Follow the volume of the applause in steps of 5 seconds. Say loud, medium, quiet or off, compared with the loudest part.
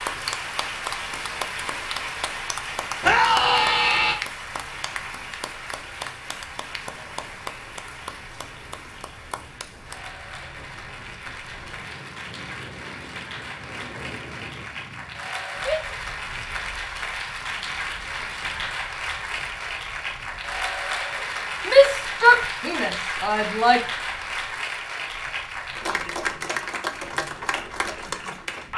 loud, medium, medium, loud, loud, loud.